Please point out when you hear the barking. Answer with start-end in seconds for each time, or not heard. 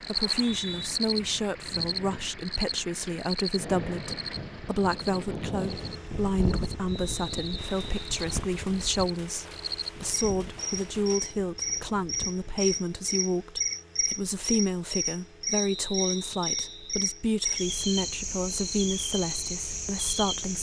not heard.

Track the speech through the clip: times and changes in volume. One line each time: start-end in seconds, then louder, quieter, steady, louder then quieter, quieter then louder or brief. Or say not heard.
0.1-20.5 steady.